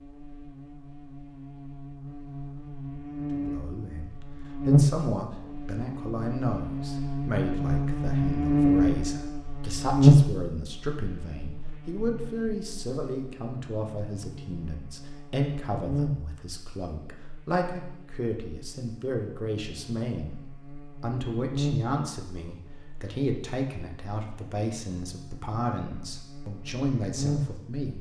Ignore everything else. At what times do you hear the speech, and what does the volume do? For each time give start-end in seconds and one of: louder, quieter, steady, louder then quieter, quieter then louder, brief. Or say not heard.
3.3-27.9 steady.